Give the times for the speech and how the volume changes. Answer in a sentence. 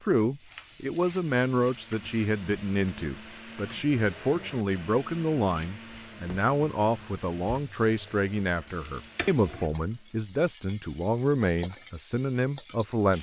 The speech can be heard from 0.0 to 13.1 s, at a steady volume.